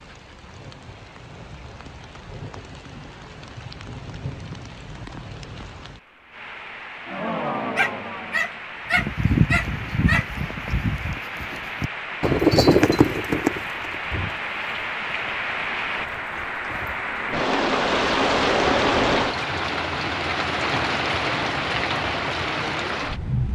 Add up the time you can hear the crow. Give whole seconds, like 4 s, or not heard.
not heard.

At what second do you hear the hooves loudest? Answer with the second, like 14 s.
13 s.